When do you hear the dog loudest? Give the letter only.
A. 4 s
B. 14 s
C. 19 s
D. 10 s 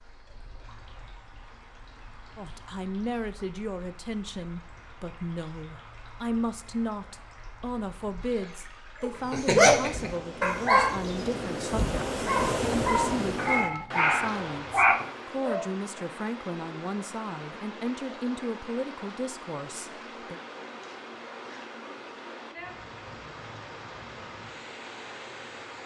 D.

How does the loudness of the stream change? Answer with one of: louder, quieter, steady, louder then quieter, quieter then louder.
louder then quieter.